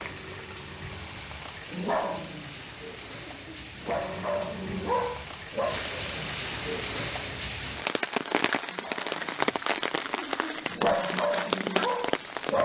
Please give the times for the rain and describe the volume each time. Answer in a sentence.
You can hear the rain from 0.0 to 12.6 s, getting louder.